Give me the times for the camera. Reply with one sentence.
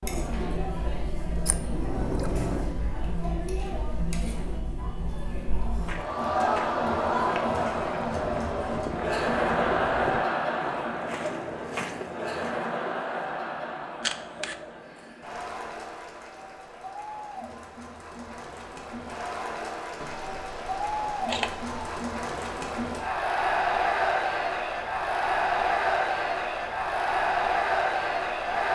The camera can be heard from 1.4 to 2.8 s, from 14.0 to 14.6 s and from 20.0 to 22.0 s.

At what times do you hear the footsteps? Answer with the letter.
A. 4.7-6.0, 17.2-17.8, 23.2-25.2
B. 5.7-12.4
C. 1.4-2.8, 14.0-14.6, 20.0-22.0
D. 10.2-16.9
B.